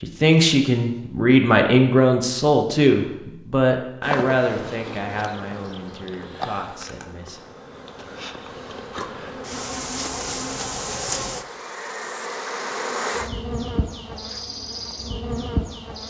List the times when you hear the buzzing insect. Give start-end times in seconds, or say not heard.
4.0-16.0.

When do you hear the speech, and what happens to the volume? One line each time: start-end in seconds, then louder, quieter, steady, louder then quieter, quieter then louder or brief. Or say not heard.
0.0-7.4 quieter.